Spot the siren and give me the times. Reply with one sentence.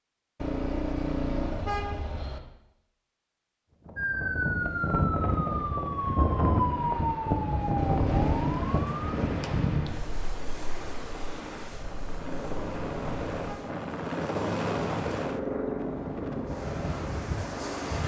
You can hear the siren from 4.0 to 9.1 s.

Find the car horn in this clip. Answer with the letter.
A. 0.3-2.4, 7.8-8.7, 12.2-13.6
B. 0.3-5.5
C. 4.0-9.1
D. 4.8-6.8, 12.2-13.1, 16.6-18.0
A.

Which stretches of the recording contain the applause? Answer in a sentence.
The applause can't be heard in this clip.